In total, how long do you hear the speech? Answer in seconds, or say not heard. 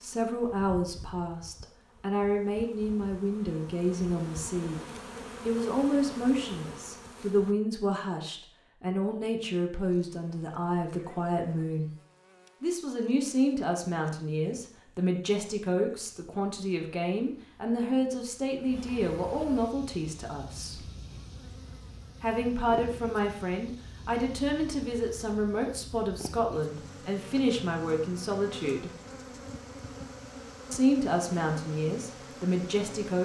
29 s.